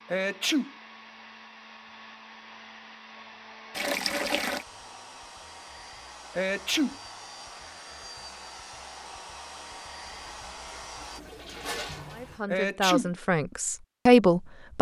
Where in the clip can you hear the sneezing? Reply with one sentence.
The sneezing can be heard from 0.1 to 0.7 s, from 6.3 to 7.0 s and from 12.4 to 13.1 s.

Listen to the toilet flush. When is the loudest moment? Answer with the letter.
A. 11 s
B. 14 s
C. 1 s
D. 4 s
D.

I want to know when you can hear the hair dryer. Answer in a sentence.
You can hear the hair dryer from 0.0 to 11.2 s.